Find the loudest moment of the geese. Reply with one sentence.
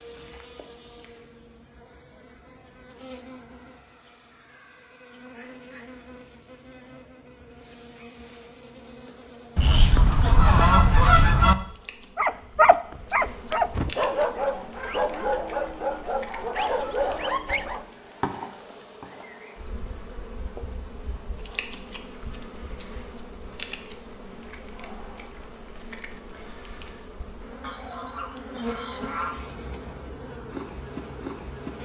The loudest moment of the geese is at 11 seconds.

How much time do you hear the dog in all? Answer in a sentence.
You can hear the dog for 6 seconds altogether.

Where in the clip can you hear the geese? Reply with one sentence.
The geese can be heard from 9.6 to 11.6 s and from 27.6 to 29.6 s.